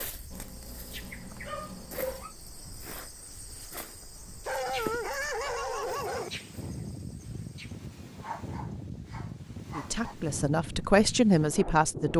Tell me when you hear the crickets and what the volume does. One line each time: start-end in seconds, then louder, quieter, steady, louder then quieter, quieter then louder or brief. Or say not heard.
0.0-7.8 louder then quieter.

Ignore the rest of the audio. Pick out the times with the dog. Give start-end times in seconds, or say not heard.
0.3-2.4, 4.5-6.3, 8.2-10.2.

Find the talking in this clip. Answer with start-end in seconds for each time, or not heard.
9.8-12.1.